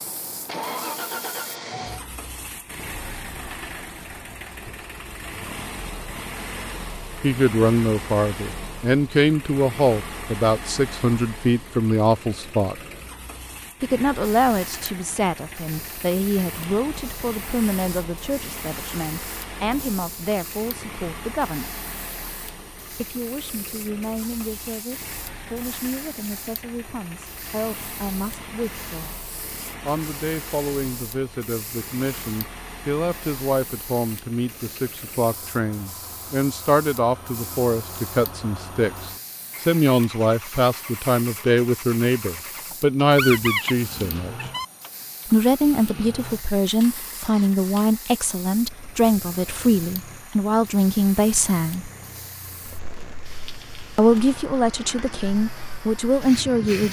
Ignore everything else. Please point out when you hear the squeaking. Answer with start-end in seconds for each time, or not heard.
43.1-44.6.